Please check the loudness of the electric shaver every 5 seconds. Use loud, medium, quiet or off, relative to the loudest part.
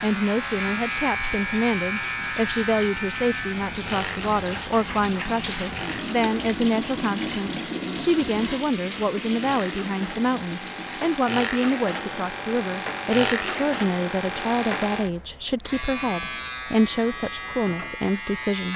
loud, medium, loud, loud.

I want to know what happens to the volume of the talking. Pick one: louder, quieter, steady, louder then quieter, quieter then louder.
steady.